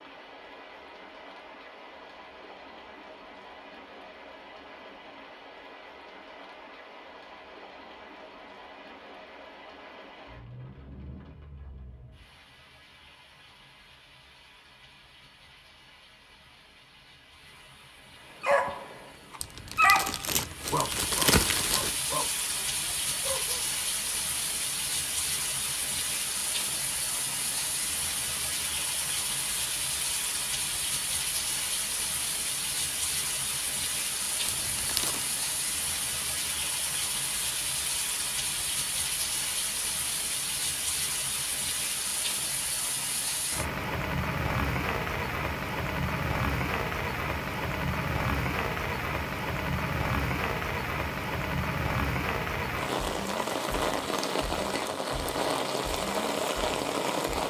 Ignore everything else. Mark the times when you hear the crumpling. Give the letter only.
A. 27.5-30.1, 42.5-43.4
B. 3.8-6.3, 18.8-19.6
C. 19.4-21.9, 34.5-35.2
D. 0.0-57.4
C.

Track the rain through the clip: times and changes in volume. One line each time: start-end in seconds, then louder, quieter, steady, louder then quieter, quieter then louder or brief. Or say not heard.
0.0-57.4 louder.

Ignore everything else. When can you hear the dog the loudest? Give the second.
20 s.